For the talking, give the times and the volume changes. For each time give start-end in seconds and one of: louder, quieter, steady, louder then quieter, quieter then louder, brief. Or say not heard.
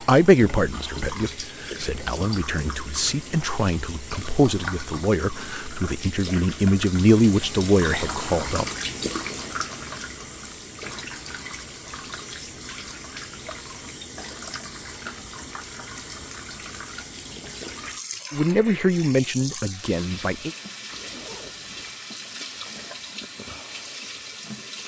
0.1-8.7 louder
18.3-20.5 brief.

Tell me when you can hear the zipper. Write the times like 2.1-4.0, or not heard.
20.9-21.9.